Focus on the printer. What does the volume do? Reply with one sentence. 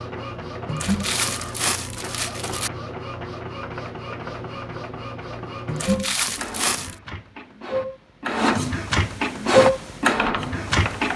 The loudness of the printer goes up.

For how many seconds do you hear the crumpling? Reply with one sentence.
The crumpling can be heard for 3 seconds in total.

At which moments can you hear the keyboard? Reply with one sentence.
The keyboard can be heard from 9.5 to 11.1 s.